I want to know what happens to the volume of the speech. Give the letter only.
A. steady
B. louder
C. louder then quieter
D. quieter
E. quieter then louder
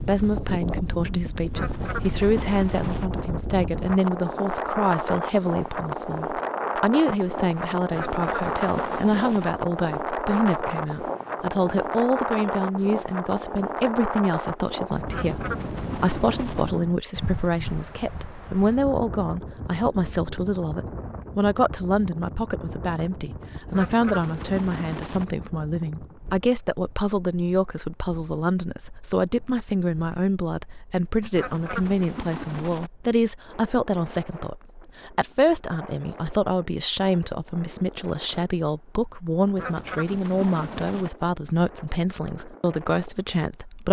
A.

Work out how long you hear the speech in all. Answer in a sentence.
You can hear the speech for 44 seconds altogether.